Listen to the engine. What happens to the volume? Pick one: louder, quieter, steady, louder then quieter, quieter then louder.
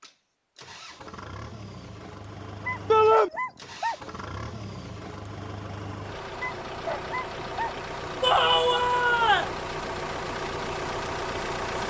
louder.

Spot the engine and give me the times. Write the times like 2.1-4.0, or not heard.
0.0-11.8.